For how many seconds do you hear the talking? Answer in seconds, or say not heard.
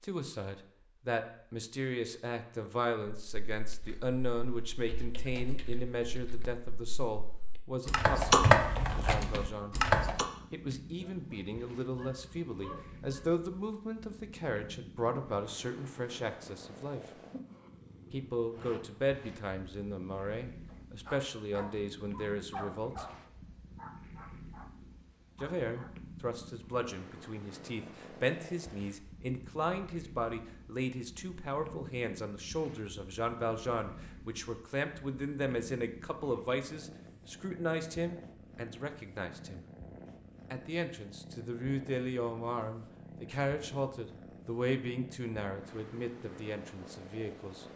43 s.